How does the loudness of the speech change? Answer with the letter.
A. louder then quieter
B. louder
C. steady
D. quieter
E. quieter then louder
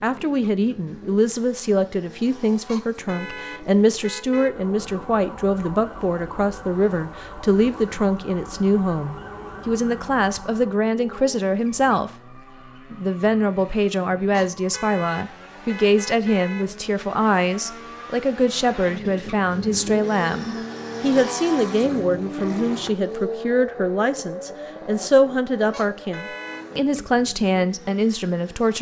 C.